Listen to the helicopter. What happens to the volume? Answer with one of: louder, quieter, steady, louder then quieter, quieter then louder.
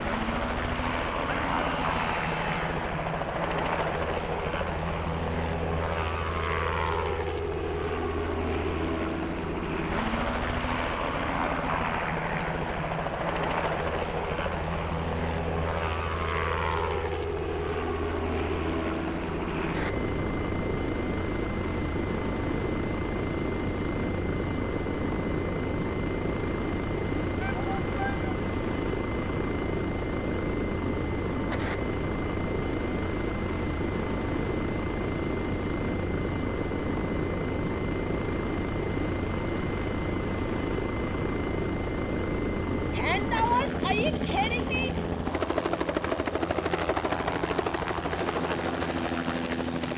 steady.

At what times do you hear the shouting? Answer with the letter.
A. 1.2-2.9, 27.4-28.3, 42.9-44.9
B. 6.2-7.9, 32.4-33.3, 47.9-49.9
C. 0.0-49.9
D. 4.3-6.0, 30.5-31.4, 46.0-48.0
A.